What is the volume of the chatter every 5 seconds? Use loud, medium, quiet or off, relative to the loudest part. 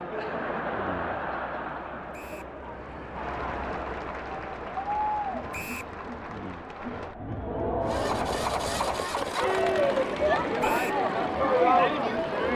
medium, medium, loud.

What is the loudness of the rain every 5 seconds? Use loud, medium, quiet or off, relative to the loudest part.
loud, loud, off.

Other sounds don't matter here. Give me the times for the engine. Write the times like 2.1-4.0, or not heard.
7.8-12.5.